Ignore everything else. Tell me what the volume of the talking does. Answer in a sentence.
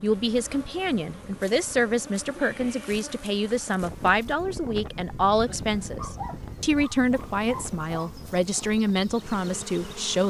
The loudness of the talking stays about the same.